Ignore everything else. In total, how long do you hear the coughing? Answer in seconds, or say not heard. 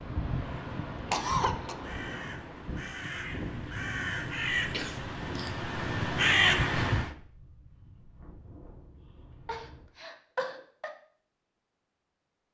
3 s.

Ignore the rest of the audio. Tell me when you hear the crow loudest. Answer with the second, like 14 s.
6 s.